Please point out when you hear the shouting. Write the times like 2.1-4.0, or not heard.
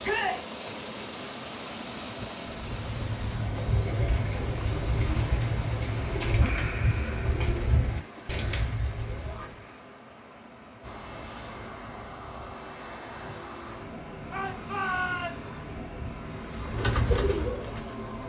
0.0-0.5, 9.1-9.5, 14.3-15.5.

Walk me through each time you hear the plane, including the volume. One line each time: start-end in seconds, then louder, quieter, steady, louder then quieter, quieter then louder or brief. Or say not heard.
10.8-18.2 steady.